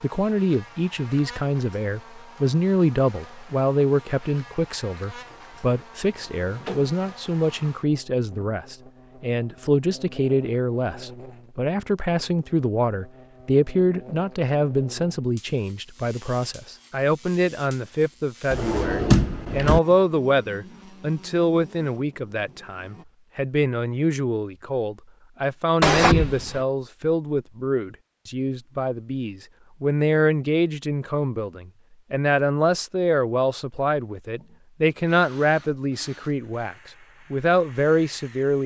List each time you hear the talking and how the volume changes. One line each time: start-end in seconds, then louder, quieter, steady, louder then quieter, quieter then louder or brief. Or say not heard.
0.0-38.6 steady.